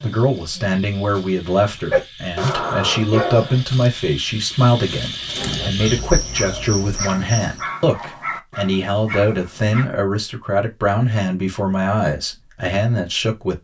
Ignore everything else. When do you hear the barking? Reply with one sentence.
You can hear the barking from 1.9 to 3.8 s and from 5.3 to 9.8 s.